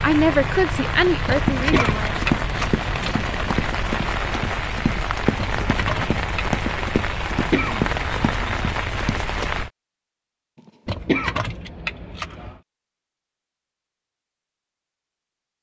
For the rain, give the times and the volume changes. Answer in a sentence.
The rain can be heard from 0.0 to 9.7 s, at a steady volume.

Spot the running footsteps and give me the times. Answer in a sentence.
The running footsteps can be heard from 1.4 to 9.5 s.